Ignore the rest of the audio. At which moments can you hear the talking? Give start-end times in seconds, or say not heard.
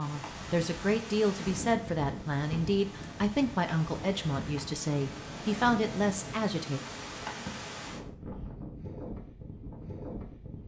0.0-6.8.